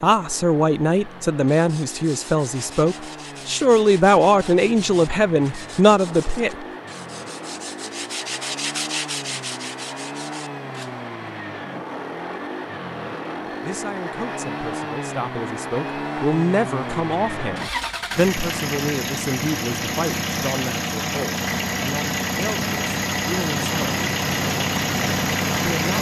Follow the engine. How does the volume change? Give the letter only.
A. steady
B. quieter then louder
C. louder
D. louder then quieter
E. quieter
C.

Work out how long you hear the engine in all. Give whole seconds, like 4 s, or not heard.
26 s.